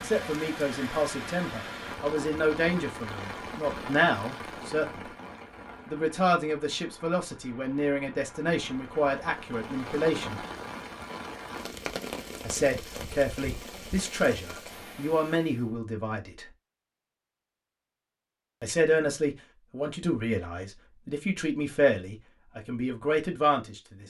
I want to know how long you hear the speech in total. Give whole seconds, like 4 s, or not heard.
19 s.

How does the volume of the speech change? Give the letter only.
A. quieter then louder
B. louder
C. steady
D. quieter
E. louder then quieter
C.